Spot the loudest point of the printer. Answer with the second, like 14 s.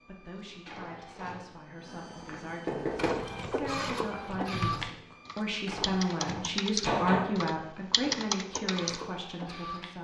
4 s.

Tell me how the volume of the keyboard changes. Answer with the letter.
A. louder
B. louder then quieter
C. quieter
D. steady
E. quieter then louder
A.